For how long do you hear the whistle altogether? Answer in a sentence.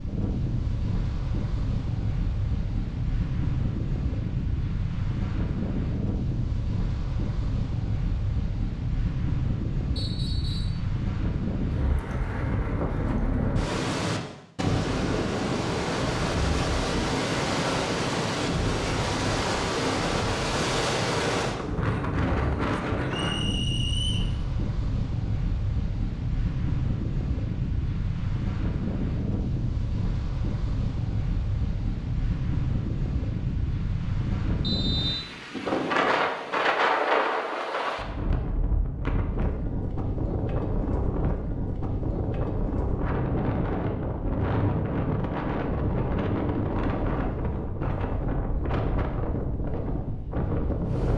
The whistle can be heard for 3 seconds in total.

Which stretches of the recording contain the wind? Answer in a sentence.
You can hear the wind from 0.0 to 51.1 s.